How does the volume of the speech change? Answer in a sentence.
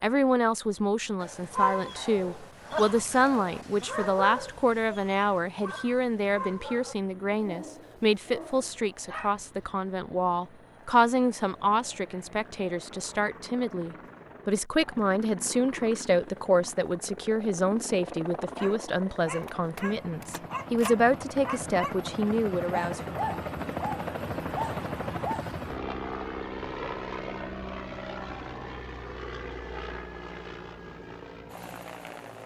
The volume of the speech stays about the same.